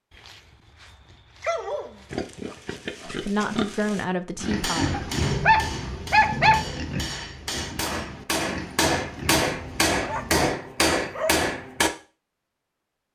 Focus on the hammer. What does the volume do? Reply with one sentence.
The volume of the hammer goes up.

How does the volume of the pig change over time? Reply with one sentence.
The volume of the pig goes up, then down.